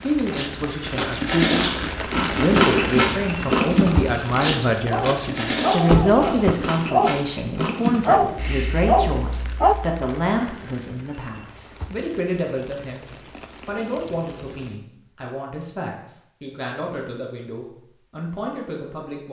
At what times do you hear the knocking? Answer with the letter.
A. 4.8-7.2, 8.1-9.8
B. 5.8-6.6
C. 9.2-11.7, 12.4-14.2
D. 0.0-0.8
B.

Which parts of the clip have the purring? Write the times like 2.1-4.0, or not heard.
not heard.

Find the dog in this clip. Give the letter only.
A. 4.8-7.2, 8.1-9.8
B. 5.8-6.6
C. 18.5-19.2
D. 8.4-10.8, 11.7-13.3
A.